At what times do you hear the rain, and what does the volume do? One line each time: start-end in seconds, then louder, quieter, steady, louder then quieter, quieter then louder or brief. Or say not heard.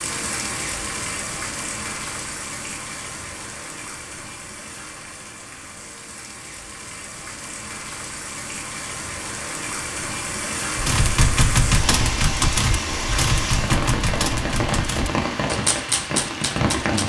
0.0-17.0 quieter then louder.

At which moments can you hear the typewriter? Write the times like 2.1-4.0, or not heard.
10.8-17.0.